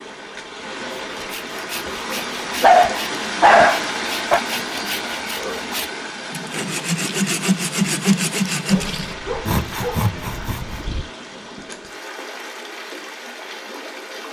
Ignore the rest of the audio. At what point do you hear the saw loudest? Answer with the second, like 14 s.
8 s.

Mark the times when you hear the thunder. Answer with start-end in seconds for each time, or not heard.
not heard.